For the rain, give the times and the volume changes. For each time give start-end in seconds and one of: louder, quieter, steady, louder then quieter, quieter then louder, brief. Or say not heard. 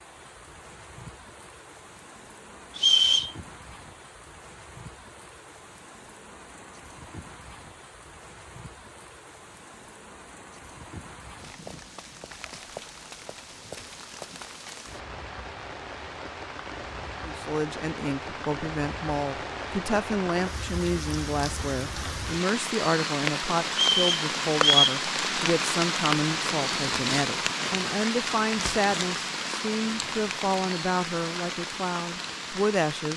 0.0-33.1 louder.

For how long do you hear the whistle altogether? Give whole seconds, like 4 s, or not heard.
2 s.